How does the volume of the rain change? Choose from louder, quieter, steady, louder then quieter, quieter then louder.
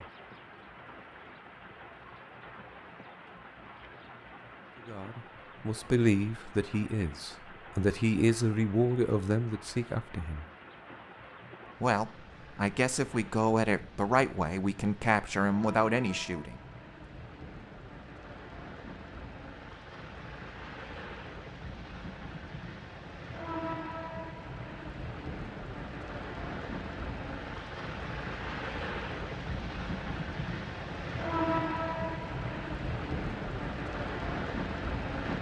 louder.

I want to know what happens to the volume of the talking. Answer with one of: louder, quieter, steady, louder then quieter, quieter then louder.
steady.